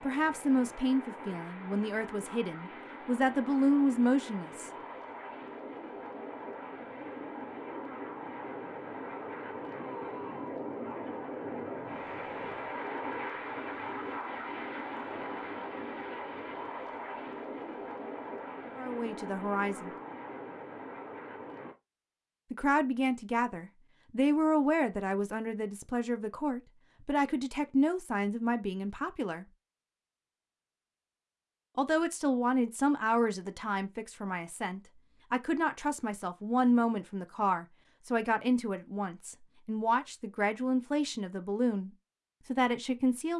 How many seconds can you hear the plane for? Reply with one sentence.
The plane can be heard for 22 seconds in total.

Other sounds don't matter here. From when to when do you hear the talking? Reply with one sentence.
You can hear the talking from 0.0 to 4.7 s, from 18.8 to 19.9 s, from 22.5 to 29.4 s and from 31.8 to 43.3 s.